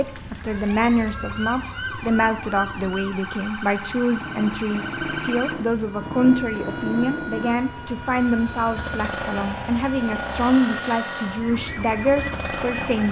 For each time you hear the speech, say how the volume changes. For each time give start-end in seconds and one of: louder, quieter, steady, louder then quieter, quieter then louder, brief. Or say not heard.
0.0-13.0 steady.